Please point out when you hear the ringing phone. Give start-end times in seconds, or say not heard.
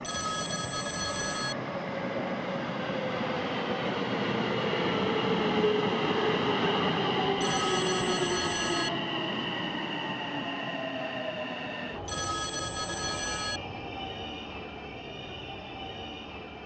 0.0-1.6, 7.3-8.9, 12.1-13.6.